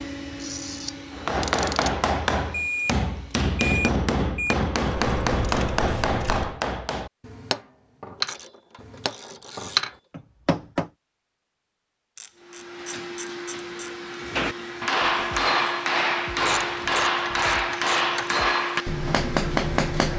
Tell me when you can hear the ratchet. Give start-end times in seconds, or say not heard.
0.4-1.9, 5.0-6.6, 8.2-10.0, 12.2-13.9, 16.4-18.4.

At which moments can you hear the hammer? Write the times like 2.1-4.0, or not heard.
1.1-10.9, 14.2-20.1.